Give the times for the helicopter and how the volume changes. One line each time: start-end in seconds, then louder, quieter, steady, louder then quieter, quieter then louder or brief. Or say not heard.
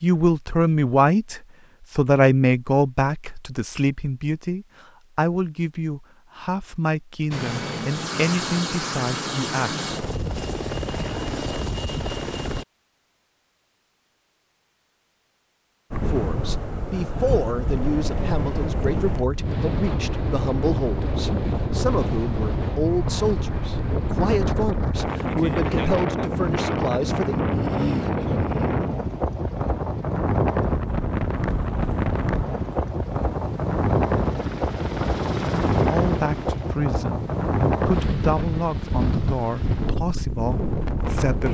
7.3-12.7 steady
30.9-40.0 louder then quieter.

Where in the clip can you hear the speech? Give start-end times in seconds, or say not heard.
0.0-9.8, 16.1-27.4, 35.9-41.4.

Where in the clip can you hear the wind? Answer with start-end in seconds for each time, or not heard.
15.9-41.4.